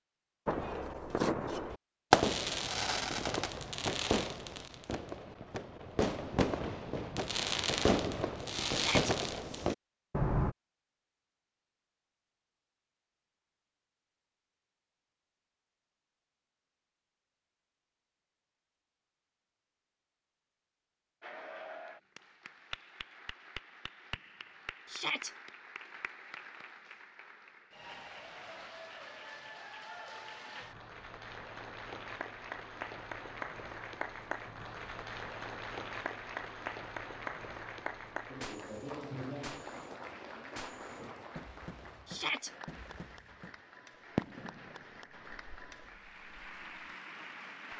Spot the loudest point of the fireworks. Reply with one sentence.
The volume of the fireworks peaks at 2 seconds.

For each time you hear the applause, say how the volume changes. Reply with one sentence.
You can hear the applause from 21.2 to 47.7 s, getting louder then quieter.